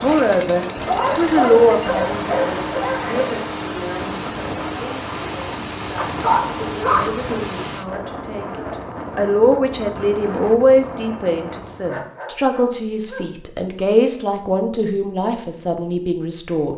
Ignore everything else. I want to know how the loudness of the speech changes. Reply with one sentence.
The volume of the speech goes down, then up.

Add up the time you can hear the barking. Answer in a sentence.
You can hear the barking for 5 seconds altogether.